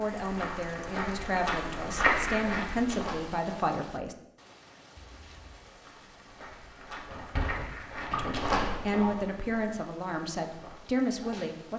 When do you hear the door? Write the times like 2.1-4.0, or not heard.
7.0-8.6.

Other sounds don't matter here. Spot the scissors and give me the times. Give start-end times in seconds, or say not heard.
5.0-5.7.